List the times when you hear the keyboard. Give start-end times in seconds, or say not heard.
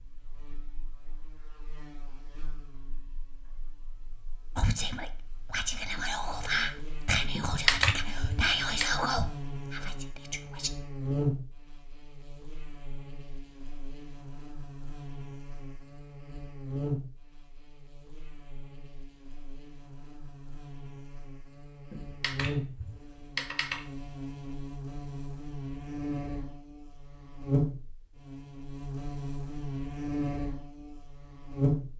7.3-8.8, 21.9-23.9.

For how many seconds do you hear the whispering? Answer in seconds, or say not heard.
6 s.